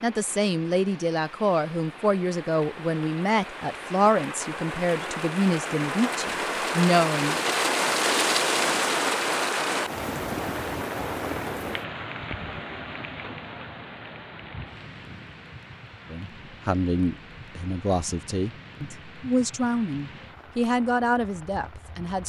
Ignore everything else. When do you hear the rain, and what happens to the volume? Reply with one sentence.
You can hear the rain from 0.0 to 22.2 s, getting louder then quieter.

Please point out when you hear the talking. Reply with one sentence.
You can hear the talking from 0.0 to 7.4 s and from 16.1 to 22.2 s.